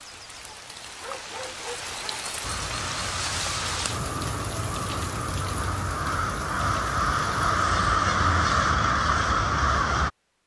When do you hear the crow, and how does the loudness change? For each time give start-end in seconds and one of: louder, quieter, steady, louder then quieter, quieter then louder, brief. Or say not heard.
2.4-10.1 louder.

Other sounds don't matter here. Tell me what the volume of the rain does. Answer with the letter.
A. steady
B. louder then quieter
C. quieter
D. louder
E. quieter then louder
B.